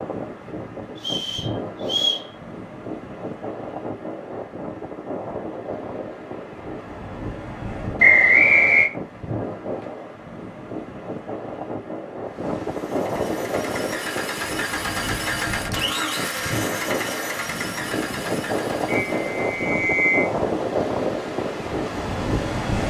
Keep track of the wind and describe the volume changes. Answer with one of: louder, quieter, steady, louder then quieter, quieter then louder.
louder.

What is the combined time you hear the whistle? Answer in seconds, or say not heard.
4 s.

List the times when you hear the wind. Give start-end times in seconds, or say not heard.
0.0-22.8.